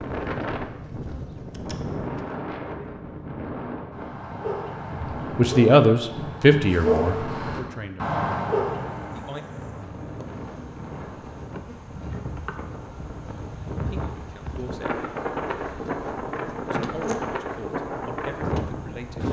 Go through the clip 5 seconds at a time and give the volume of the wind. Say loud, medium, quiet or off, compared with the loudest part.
loud, medium, medium, loud.